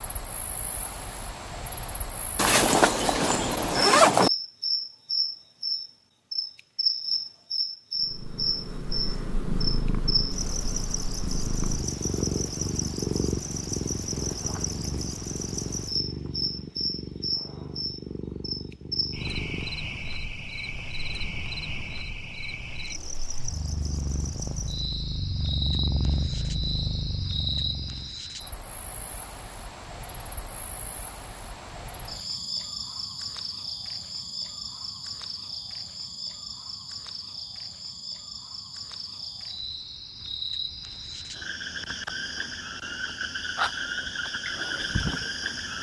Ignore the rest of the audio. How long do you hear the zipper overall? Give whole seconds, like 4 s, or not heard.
2 s.